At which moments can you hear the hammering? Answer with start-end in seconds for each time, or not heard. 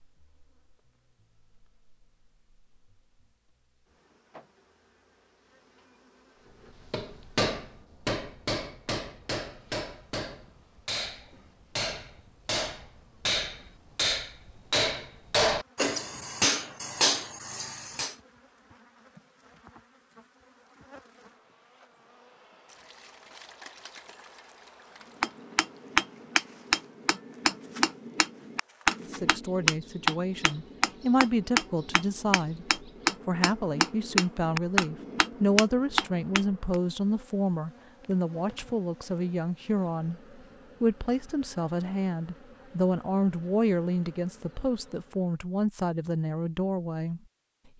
6.9-18.1, 25.2-36.8.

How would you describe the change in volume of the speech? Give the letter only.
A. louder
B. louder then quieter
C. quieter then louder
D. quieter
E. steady
E.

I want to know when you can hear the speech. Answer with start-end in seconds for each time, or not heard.
29.0-47.2.